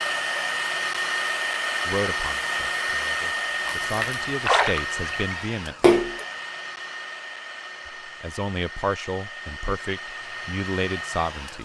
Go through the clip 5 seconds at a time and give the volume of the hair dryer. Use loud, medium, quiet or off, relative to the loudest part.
loud, medium, medium.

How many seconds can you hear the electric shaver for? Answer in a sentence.
You can't hear the electric shaver here.